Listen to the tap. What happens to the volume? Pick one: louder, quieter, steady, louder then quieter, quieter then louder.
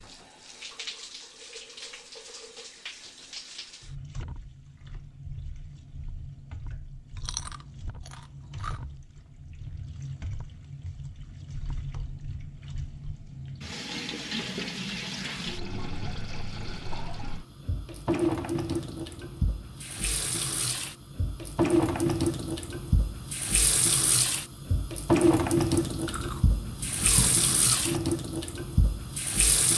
louder.